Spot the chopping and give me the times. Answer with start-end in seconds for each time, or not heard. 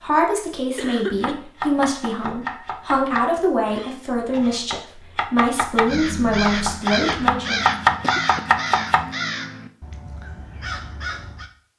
1.2-9.1.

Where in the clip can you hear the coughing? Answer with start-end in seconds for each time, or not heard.
0.8-1.4, 8.0-8.4.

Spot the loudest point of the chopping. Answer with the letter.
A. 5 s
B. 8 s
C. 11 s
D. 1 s
B.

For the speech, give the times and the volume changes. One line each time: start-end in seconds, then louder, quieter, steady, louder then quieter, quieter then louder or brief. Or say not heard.
0.0-7.6 steady.